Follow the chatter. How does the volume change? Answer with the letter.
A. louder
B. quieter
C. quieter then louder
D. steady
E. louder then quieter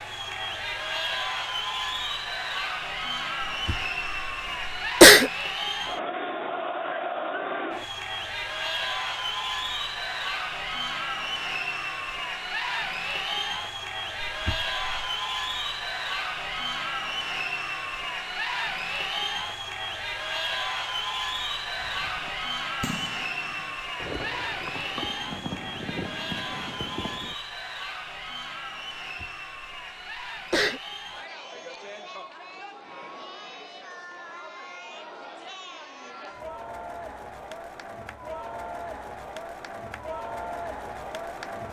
B.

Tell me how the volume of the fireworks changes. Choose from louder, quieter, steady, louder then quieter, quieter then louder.
quieter then louder.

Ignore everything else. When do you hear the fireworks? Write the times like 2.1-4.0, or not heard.
21.8-27.4.